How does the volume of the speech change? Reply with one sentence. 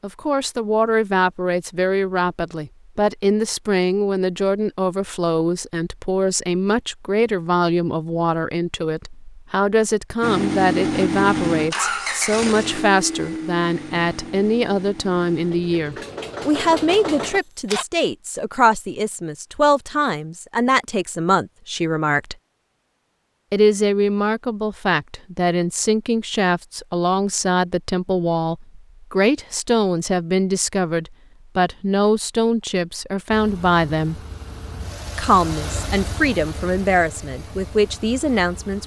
The volume of the speech stays about the same.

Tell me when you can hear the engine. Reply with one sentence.
You can hear the engine from 10.2 to 17.9 s and from 33.3 to 38.8 s.